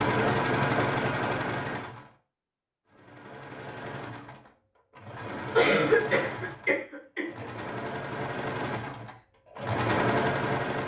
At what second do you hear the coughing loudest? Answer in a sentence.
The volume of the coughing peaks at 6 seconds.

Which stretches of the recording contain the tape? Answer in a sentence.
The tape can't be heard in this clip.